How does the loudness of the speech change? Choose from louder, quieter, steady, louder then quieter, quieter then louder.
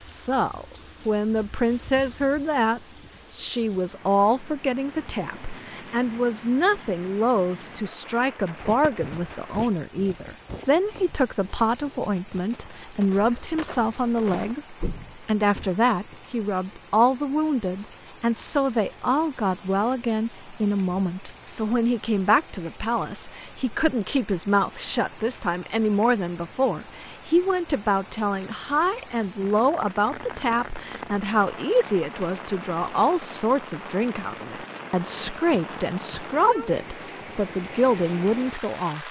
steady.